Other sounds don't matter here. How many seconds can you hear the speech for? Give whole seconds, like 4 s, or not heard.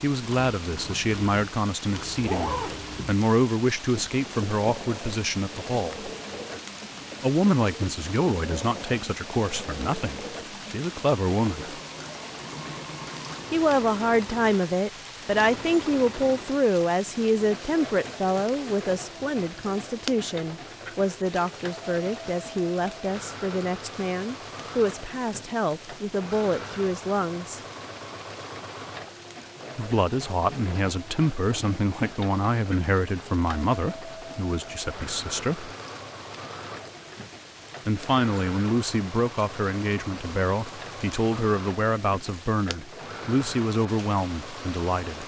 38 s.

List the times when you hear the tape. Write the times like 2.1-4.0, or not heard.
not heard.